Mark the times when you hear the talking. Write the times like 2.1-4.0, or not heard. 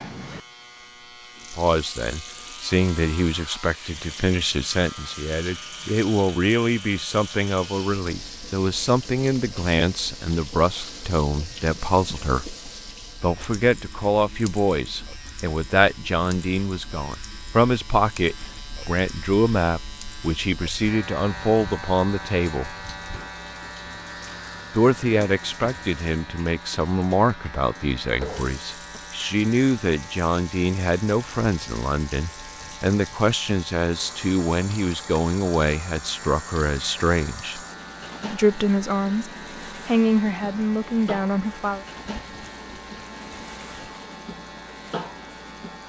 1.5-12.6, 13.2-22.7, 24.7-37.6, 38.3-41.9.